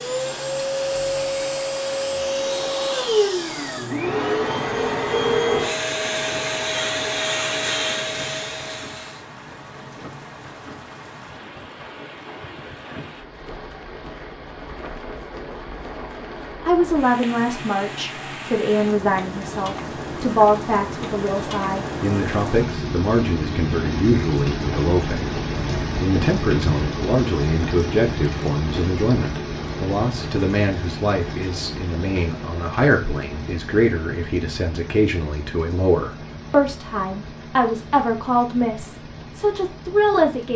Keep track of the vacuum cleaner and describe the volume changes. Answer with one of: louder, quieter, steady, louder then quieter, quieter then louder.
steady.